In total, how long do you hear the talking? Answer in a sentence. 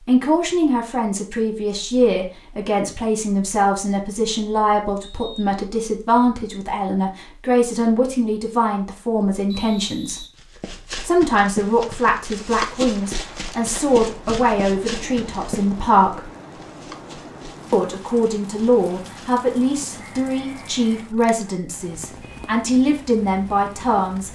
The talking can be heard for 22 seconds in total.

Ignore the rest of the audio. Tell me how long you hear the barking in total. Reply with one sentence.
You can't hear the barking here.